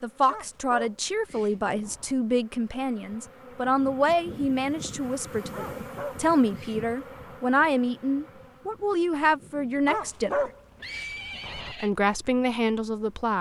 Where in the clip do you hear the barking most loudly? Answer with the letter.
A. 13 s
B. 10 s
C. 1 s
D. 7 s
B.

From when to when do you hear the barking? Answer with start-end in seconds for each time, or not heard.
0.2-2.1, 5.5-7.4, 9.8-11.8.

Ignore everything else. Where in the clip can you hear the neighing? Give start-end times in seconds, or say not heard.
10.8-11.9.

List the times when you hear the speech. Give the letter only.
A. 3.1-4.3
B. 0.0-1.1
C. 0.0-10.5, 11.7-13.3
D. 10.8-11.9
C.